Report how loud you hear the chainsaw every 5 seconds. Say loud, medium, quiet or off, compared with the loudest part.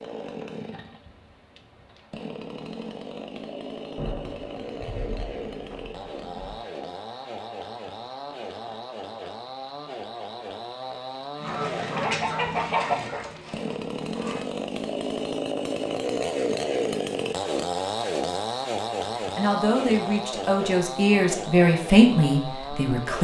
medium, medium, medium, loud, medium.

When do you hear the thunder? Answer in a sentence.
The thunder can be heard from 4.0 to 6.6 s.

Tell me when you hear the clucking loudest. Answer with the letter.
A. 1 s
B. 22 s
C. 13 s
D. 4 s
C.